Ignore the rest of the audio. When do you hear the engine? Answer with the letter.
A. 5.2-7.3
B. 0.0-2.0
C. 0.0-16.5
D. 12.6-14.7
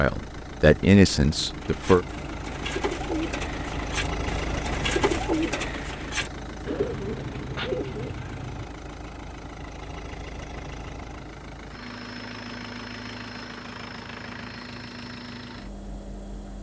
C.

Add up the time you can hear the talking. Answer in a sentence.
You can hear the talking for 2 seconds altogether.